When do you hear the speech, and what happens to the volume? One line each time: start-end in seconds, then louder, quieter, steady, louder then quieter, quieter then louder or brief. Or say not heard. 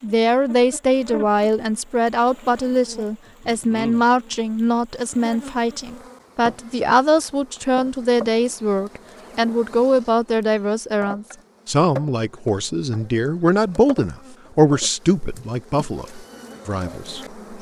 0.0-17.4 steady.